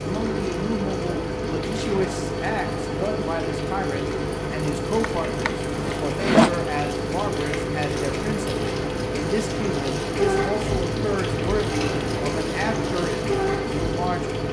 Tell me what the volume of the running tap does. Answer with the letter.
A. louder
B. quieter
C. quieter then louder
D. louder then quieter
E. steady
A.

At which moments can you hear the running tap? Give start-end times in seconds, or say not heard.
0.0-14.4.